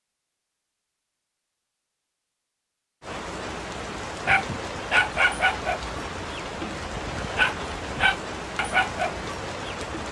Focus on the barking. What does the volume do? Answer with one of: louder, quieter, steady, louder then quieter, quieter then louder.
quieter then louder.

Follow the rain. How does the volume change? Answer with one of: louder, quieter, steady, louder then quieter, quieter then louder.
steady.